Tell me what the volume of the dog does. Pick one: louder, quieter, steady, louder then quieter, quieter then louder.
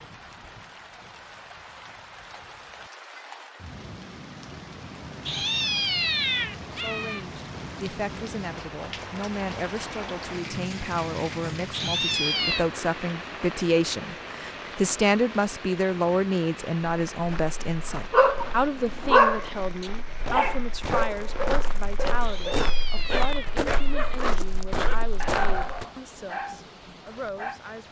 quieter.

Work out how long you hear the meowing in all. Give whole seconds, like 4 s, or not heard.
5 s.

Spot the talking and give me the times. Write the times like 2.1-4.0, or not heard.
6.7-27.8.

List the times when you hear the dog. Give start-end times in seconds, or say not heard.
18.1-27.6.